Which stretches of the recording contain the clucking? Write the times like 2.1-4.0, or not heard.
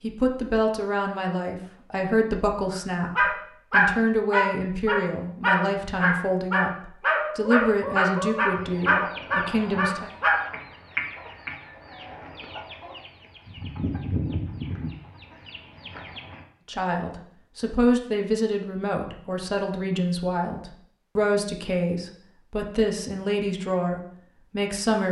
7.1-16.4.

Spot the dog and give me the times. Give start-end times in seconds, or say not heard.
3.1-10.4.